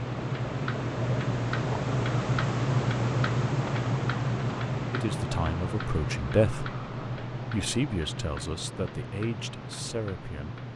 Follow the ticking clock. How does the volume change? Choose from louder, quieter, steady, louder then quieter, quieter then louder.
quieter.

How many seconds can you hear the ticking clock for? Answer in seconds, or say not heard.
11 s.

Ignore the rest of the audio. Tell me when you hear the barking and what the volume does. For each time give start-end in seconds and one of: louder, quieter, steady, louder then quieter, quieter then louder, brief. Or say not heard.
not heard.